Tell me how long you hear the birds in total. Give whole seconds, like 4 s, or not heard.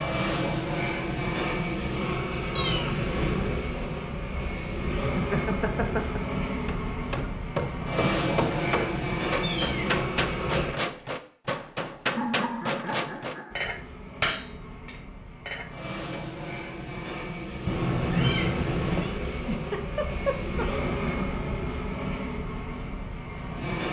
not heard.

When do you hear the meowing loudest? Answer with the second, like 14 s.
18 s.